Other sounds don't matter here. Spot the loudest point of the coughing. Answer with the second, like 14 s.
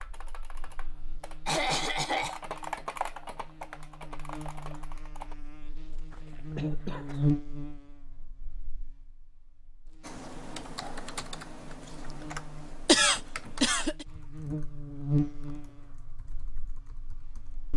13 s.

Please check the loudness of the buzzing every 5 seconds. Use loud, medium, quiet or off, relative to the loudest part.
quiet, loud, medium, loud.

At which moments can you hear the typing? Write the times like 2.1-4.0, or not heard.
0.0-5.3, 10.0-17.6.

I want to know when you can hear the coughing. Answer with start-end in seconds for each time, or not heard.
1.4-2.4, 6.1-7.2, 12.8-14.1.